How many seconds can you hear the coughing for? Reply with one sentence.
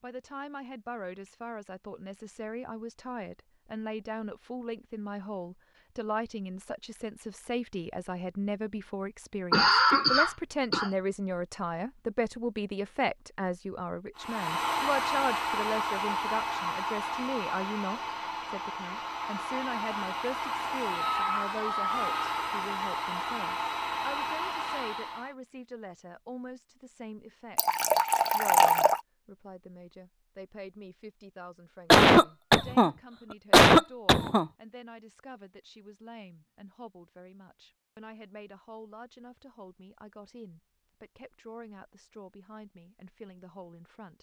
The coughing can be heard for 3 seconds in total.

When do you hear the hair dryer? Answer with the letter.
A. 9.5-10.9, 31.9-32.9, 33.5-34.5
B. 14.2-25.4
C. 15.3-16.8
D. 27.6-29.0
B.